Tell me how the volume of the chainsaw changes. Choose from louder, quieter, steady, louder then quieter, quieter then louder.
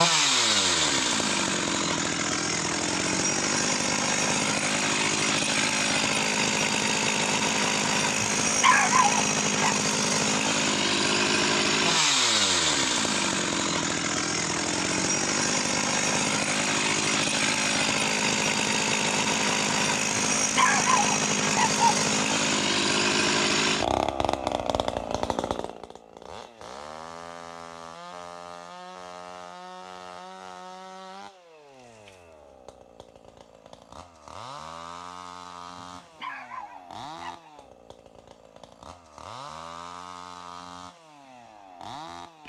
quieter.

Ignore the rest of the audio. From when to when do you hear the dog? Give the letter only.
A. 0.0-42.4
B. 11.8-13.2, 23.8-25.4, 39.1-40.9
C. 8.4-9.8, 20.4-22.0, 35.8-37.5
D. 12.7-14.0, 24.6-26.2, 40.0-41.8
C.